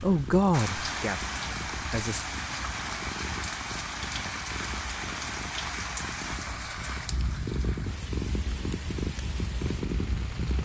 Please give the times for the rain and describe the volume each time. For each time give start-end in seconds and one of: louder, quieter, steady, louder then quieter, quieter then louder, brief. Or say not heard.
0.0-10.6 quieter.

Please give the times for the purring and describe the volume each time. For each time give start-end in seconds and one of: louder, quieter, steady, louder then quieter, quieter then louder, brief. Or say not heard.
0.0-10.6 louder.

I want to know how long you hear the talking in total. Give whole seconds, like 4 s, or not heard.
2 s.